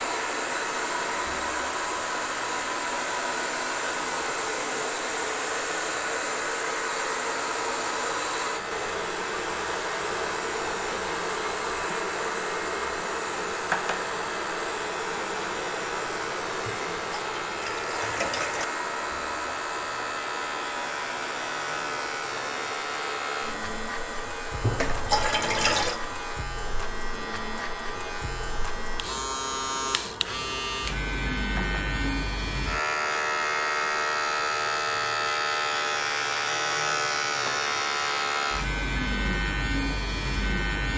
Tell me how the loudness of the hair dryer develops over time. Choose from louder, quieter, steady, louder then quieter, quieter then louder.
quieter.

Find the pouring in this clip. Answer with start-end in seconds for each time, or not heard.
16.6-18.6, 24.6-26.0.